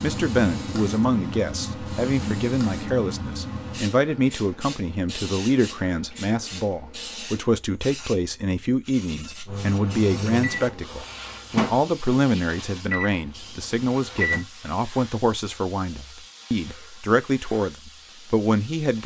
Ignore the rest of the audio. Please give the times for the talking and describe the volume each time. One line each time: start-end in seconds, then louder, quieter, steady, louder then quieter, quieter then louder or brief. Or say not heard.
0.0-19.0 steady.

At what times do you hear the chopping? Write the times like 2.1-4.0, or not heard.
not heard.